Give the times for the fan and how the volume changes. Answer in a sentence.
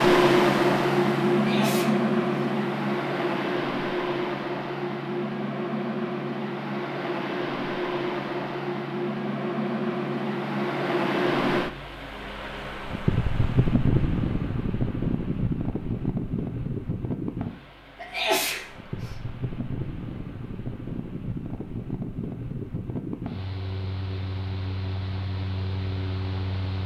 The fan can be heard from 0.0 to 26.8 s, getting quieter.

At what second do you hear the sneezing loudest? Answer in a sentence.
The volume of the sneezing peaks at 18 seconds.